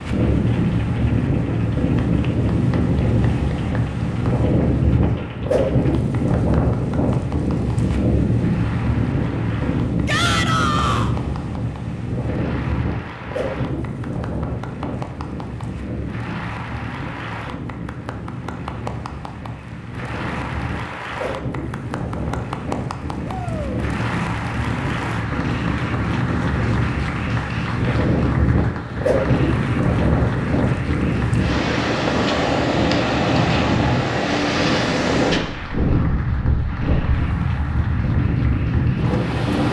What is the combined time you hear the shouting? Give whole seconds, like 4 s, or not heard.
2 s.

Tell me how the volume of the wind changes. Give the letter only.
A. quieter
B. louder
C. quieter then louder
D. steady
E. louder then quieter
C.